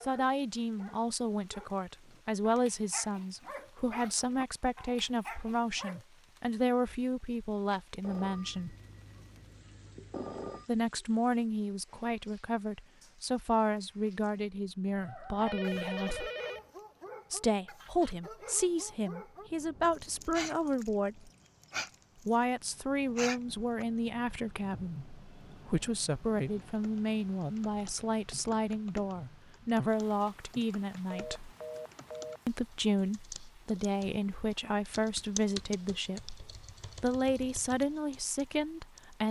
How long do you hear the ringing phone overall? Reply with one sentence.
You can hear the ringing phone for 6 seconds altogether.